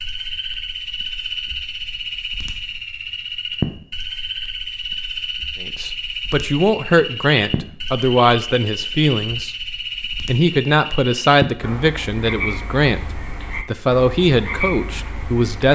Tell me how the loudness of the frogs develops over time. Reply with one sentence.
The volume of the frogs stays about the same.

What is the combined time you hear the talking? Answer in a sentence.
You can hear the talking for 10 seconds altogether.